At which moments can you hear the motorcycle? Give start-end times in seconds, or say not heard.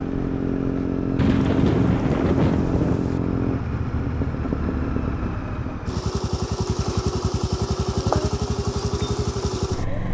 0.0-10.0.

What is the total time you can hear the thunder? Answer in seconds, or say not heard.
2 s.